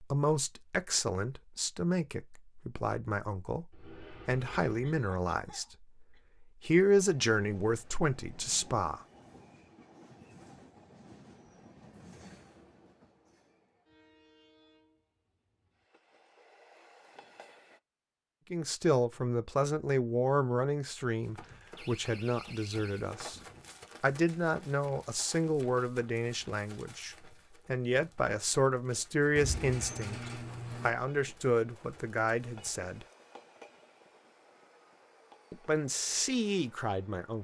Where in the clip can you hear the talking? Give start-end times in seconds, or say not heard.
0.0-9.0, 18.5-23.4, 24.0-33.0, 35.5-37.3.